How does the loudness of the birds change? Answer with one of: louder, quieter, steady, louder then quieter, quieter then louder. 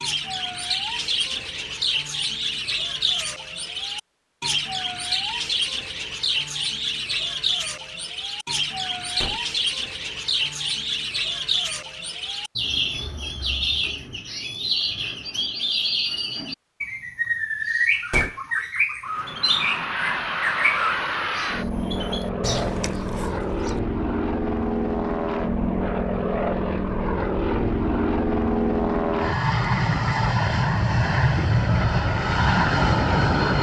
steady.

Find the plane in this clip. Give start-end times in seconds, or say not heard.
19.0-33.5.